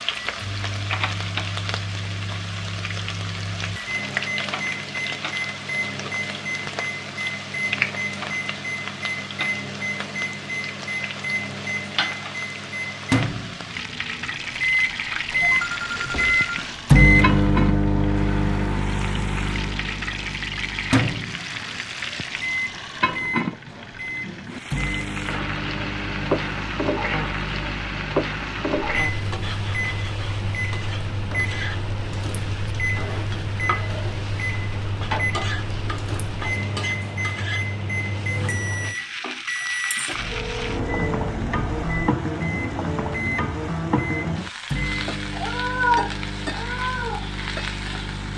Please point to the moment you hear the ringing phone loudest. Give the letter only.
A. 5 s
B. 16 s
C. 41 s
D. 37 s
B.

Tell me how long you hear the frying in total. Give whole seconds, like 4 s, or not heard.
48 s.